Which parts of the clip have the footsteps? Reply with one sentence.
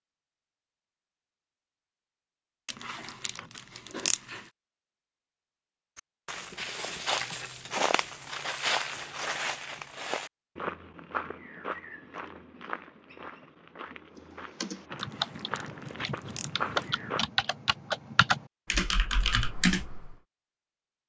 The footsteps can be heard from 6.0 to 17.2 s.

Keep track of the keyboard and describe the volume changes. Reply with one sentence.
The volume of the keyboard goes down, then up.